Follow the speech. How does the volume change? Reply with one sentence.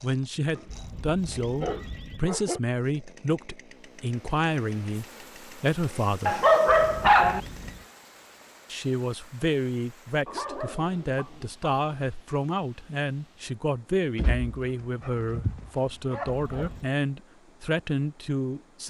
The loudness of the speech stays about the same.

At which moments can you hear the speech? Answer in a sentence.
The speech can be heard from 0.0 to 6.5 s and from 8.7 to 18.8 s.